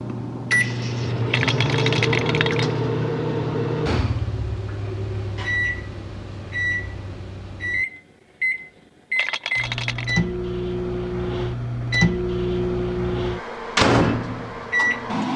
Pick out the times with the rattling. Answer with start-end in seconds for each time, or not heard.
1.3-2.8, 9.2-10.1.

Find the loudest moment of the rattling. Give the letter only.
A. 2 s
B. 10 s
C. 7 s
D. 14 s
A.